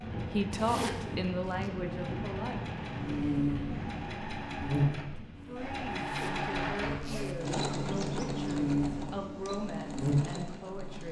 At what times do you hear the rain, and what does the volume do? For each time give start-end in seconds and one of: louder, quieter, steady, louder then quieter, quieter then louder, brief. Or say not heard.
0.0-7.0 quieter.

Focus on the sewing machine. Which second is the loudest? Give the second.
8 s.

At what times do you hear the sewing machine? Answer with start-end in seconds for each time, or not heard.
0.0-11.0.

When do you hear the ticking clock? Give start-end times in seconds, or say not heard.
not heard.